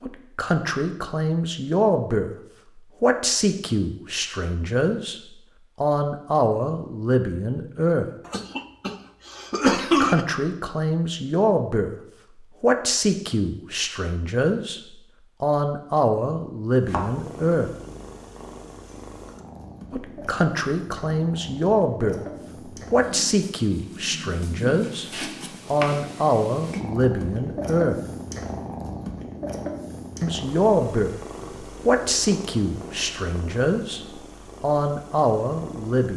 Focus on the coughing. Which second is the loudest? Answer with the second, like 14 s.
10 s.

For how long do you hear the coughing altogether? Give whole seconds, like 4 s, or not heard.
2 s.